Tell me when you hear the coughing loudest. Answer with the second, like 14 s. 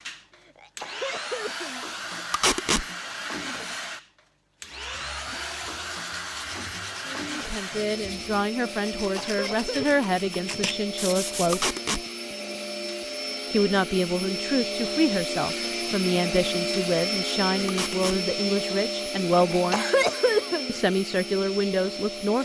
20 s.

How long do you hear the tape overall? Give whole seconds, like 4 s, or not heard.
2 s.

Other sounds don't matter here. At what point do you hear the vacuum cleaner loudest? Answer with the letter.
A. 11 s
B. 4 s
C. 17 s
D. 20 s
C.